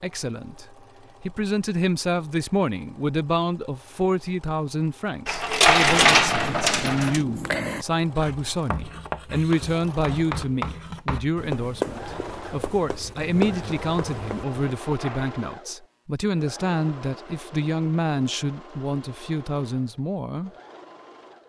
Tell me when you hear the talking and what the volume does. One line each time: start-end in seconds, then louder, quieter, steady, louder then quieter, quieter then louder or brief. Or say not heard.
0.0-20.5 steady.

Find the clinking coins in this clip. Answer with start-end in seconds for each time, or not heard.
5.2-7.2, 14.8-15.3.